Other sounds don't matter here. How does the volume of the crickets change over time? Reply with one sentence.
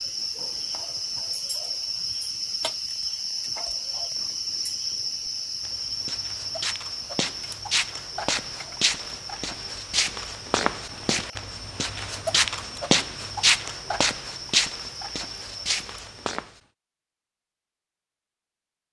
The volume of the crickets goes down.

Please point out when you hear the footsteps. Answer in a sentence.
You can hear the footsteps from 5.6 to 16.5 s.